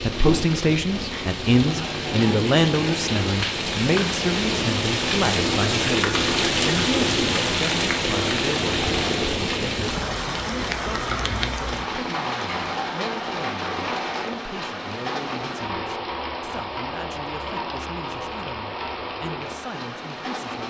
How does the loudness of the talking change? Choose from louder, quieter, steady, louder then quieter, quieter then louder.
quieter.